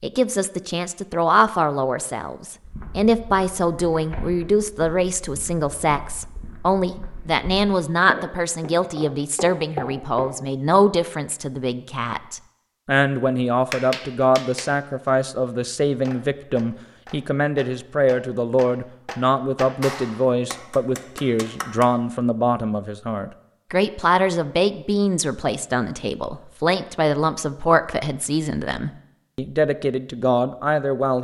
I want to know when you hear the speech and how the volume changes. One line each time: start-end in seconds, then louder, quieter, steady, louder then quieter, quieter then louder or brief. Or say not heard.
0.0-31.2 steady.